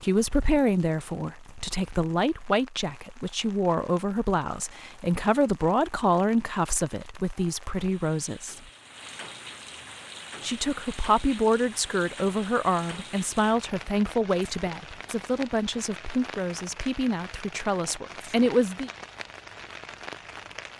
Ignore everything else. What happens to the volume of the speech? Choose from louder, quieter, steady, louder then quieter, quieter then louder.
steady.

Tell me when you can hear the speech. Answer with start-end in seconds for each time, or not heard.
0.0-8.6, 10.4-18.9.